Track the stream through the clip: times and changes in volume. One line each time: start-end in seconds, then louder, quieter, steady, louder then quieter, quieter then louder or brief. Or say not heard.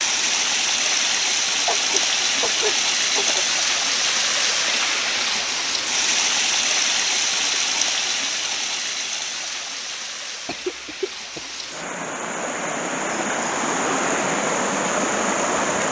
0.0-15.8 quieter then louder.